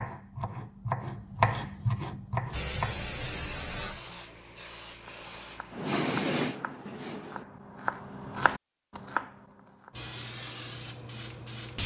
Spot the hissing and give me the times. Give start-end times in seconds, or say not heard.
2.5-7.5, 9.9-11.8.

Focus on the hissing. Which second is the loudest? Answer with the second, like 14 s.
6 s.